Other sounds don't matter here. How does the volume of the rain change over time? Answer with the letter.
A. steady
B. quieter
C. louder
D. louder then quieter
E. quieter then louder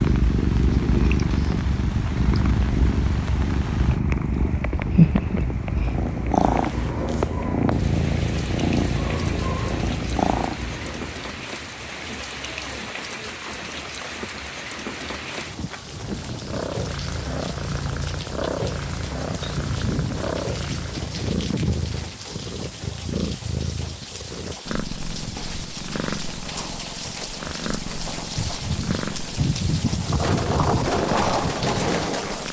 C.